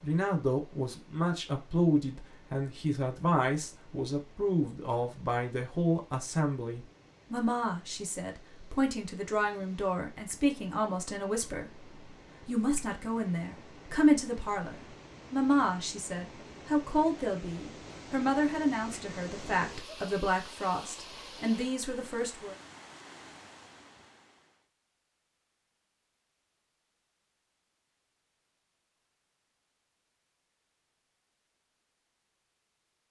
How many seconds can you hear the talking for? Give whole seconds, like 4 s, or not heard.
22 s.